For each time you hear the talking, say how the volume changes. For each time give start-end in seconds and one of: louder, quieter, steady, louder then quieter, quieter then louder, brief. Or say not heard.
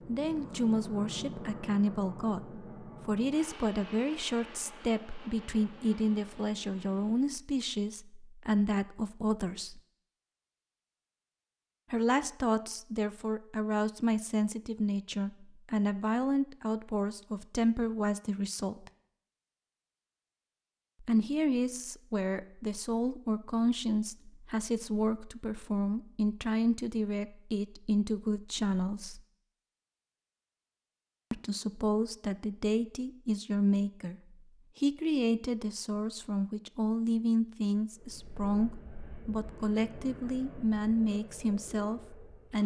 0.1-9.8 steady
11.9-18.9 steady
21.0-29.2 steady
31.3-42.6 steady.